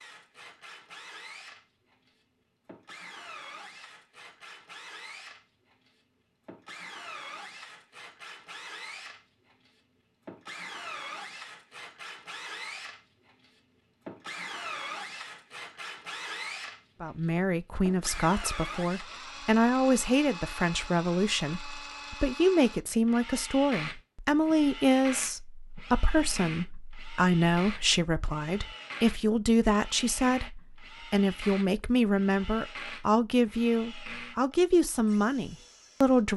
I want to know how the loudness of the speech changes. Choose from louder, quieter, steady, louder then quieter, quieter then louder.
steady.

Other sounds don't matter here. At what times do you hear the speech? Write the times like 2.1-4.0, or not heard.
17.0-36.3.